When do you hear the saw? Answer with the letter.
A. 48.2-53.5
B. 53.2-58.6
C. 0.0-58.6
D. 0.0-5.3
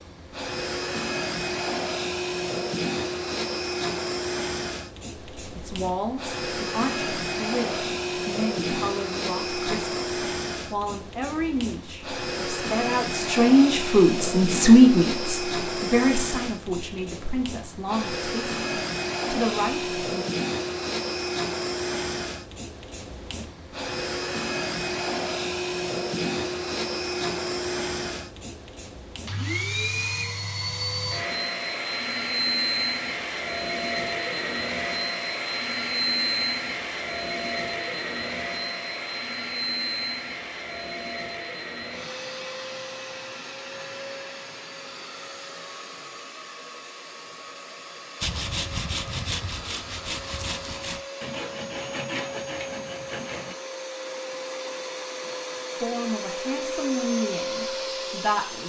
A.